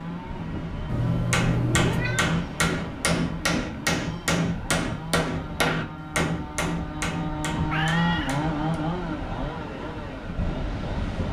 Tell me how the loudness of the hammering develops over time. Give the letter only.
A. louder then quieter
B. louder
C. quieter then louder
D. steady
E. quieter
E.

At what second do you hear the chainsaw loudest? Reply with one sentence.
The volume of the chainsaw peaks at 8 seconds.